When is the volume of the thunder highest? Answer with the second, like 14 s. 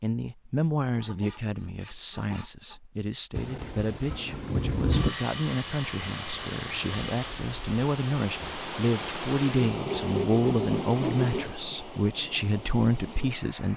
5 s.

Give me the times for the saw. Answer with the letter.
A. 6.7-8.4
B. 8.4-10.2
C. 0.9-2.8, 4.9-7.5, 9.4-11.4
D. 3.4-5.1
C.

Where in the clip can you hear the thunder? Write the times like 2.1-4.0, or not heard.
3.4-5.1.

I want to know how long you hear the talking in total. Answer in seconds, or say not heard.
14 s.